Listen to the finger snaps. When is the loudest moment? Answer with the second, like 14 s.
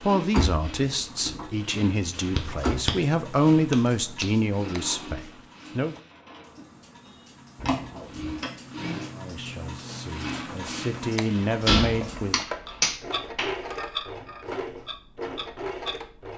13 s.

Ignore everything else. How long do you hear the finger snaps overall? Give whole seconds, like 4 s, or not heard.
3 s.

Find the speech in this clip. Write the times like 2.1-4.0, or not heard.
0.0-6.0, 9.1-12.4.